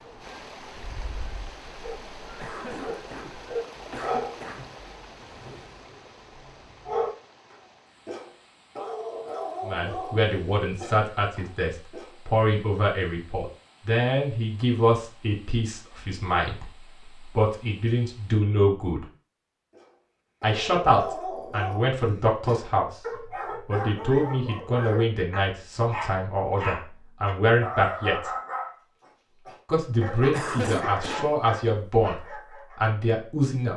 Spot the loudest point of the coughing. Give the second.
31 s.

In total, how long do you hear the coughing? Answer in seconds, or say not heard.
3 s.